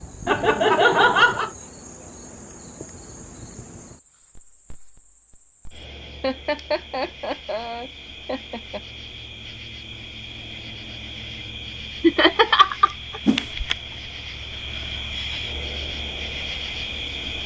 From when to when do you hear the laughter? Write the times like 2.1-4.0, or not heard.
0.2-1.5, 6.2-8.8, 12.0-13.2.